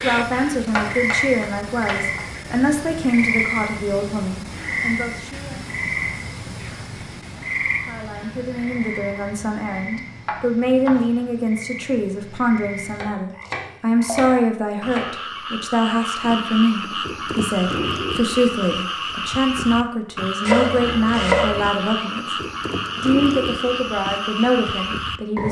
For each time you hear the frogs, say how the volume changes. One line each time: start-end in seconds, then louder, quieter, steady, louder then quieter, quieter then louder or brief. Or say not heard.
0.0-25.4 quieter then louder.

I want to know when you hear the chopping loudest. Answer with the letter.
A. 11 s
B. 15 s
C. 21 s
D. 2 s
C.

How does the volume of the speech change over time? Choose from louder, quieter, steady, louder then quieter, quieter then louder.
steady.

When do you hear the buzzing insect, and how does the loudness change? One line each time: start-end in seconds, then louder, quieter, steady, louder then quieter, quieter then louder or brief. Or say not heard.
not heard.